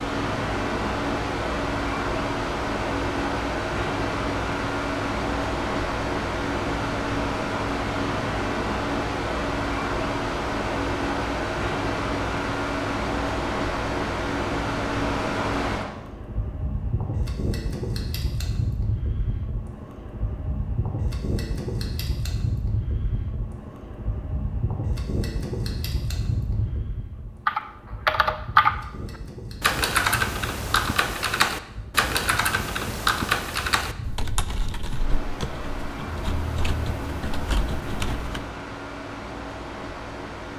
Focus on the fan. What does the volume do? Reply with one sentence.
The volume of the fan goes down.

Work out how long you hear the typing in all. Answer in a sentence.
You can hear the typing for 10 seconds altogether.